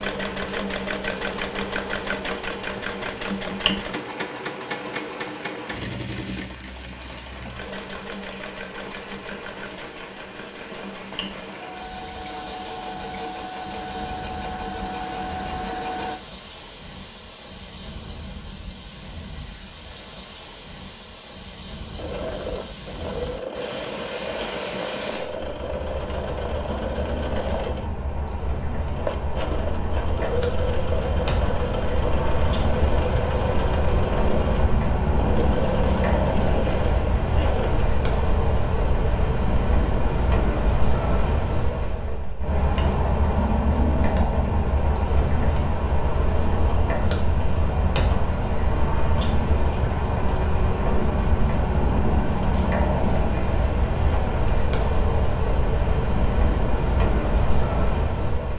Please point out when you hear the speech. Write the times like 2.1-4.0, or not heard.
not heard.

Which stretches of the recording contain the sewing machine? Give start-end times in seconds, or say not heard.
0.0-16.2, 21.9-37.9.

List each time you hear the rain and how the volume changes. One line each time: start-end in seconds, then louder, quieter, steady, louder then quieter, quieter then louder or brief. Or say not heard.
0.1-58.5 louder.